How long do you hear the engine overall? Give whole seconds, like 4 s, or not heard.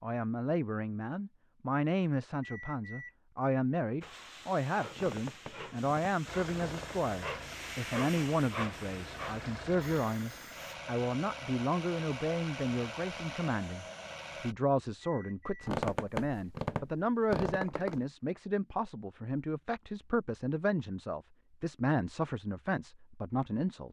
8 s.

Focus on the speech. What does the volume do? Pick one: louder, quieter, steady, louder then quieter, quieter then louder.
steady.